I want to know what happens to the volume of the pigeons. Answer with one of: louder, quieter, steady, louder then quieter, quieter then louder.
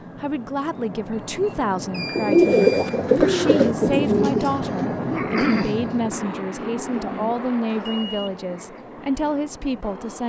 quieter.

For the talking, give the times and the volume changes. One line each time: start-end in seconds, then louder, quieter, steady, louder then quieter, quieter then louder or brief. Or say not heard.
0.1-10.2 steady.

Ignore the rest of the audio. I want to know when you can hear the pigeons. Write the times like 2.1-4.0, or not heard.
2.1-8.8.